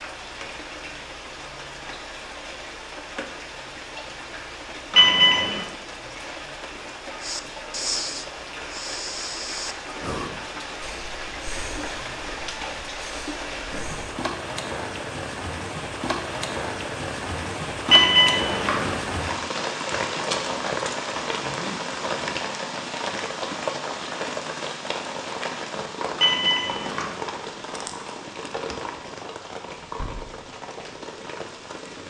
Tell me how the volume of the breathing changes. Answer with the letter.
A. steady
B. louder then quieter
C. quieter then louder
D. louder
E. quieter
E.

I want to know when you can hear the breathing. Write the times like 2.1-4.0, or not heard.
7.2-14.2.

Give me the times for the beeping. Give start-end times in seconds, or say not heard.
4.9-5.6, 17.9-18.9, 26.1-27.1.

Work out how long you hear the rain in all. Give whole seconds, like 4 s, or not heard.
32 s.